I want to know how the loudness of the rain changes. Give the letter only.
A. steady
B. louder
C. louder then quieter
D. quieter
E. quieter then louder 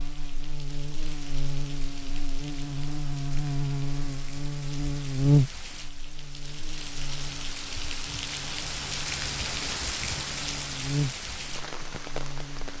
B.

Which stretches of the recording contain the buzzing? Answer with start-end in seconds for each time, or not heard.
0.0-12.7.